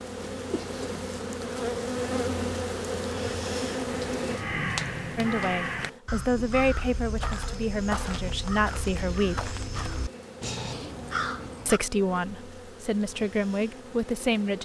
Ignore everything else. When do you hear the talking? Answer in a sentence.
You can hear the talking from 5.2 to 9.6 s and from 11.7 to 14.6 s.